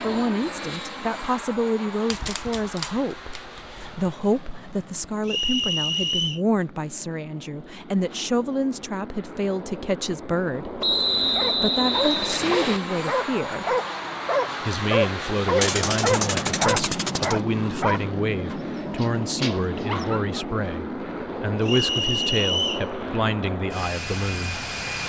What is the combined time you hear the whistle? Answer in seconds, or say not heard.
4 s.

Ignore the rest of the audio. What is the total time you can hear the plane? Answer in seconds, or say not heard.
25 s.